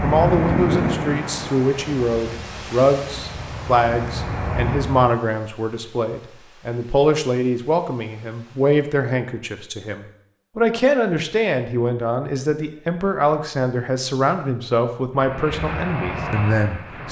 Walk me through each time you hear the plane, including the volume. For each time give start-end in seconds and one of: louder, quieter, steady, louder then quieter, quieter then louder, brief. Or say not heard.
0.0-5.2 quieter then louder
15.2-17.0 brief.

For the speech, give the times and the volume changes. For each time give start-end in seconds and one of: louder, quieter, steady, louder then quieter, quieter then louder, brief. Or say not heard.
0.0-17.0 steady.